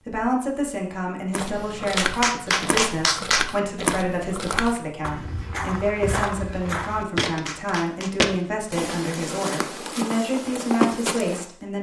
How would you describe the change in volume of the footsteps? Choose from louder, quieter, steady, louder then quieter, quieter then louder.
steady.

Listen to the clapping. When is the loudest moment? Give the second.
3 s.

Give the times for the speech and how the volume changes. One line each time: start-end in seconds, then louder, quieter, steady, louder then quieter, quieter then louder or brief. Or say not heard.
0.1-11.7 steady.